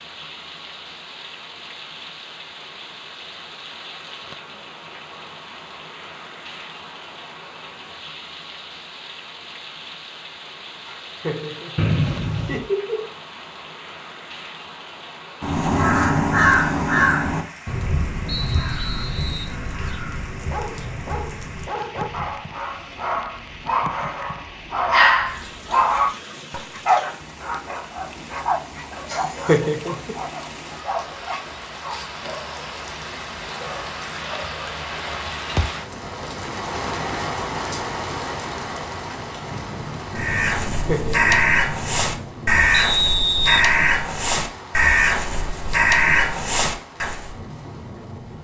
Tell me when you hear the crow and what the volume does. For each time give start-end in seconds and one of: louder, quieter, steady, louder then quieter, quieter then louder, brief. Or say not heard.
15.4-22.3 quieter
40.1-47.3 steady.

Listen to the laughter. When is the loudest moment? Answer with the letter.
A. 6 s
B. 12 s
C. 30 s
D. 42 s
C.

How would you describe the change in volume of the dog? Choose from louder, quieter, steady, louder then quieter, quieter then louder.
louder then quieter.